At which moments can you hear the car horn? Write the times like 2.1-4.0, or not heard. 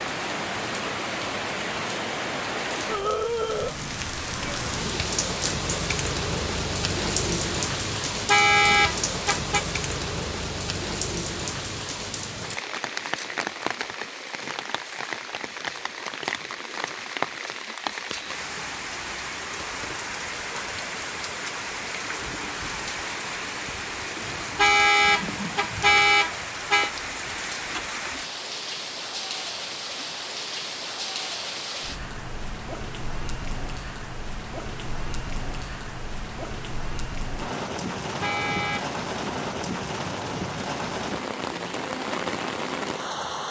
8.1-9.6, 24.2-26.9, 38.1-38.9.